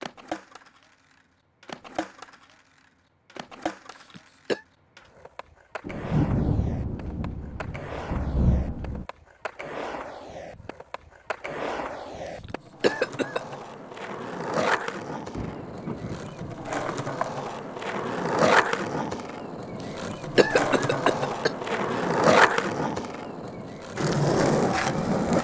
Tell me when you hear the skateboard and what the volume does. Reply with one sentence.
You can hear the skateboard from 0.0 to 25.3 s, getting louder.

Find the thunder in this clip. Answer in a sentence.
You can hear the thunder from 5.8 to 9.1 s and from 15.3 to 16.8 s.